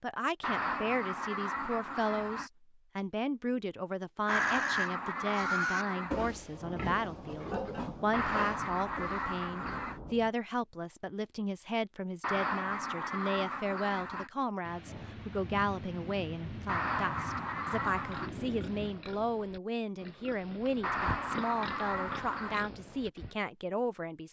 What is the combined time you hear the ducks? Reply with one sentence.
You can hear the ducks for 12 seconds altogether.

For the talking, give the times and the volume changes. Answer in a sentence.
You can hear the talking from 0.0 to 24.2 s, at a steady volume.